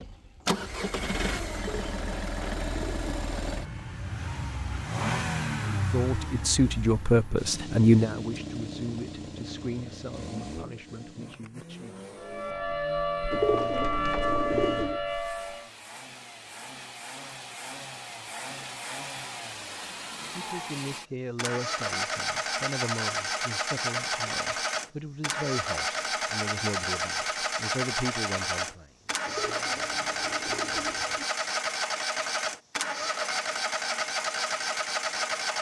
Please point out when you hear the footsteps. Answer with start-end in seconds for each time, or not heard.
not heard.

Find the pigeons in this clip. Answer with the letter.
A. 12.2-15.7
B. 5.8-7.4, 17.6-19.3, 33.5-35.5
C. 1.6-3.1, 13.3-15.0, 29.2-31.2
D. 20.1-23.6
C.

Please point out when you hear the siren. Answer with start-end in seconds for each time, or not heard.
12.2-15.7.